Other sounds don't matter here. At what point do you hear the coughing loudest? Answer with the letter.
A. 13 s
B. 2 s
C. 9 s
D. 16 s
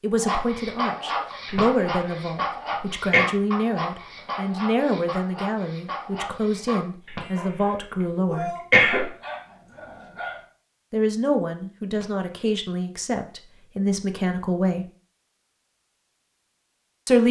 C.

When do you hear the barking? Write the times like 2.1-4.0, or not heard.
0.1-10.4.